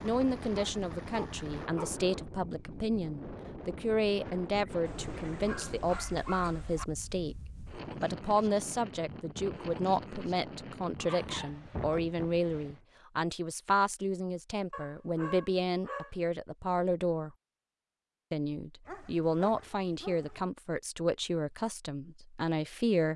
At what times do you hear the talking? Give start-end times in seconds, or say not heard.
0.0-7.3, 8.0-17.3, 18.3-23.1.